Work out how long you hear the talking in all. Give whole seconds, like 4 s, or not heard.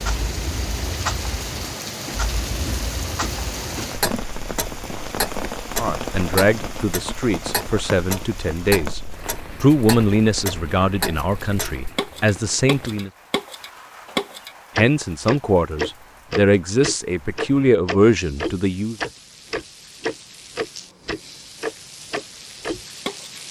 11 s.